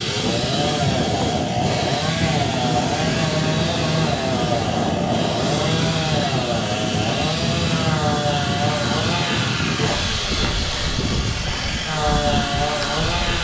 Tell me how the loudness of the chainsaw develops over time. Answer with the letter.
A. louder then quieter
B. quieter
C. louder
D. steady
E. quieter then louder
D.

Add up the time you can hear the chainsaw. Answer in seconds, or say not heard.
13 s.